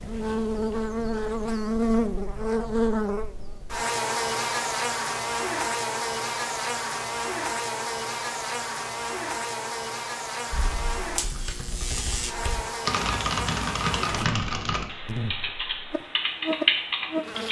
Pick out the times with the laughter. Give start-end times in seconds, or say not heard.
not heard.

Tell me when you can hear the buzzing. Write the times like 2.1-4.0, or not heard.
0.0-17.4.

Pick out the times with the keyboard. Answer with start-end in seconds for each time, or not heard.
10.5-17.4.